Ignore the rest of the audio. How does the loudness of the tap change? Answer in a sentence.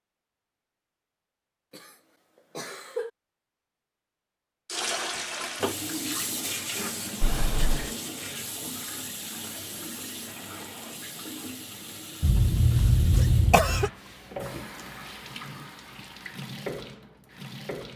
The loudness of the tap goes down.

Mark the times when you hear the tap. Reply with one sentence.
The tap can be heard from 4.7 to 17.9 s.